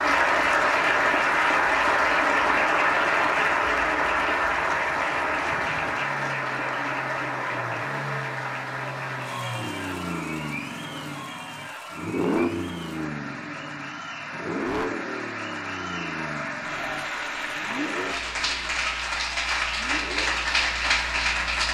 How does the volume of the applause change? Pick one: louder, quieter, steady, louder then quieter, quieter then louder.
quieter then louder.